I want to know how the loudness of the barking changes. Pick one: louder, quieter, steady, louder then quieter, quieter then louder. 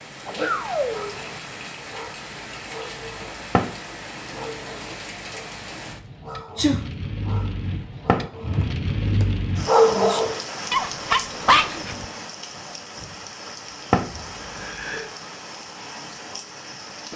louder.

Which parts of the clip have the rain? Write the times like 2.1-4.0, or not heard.
0.0-17.1.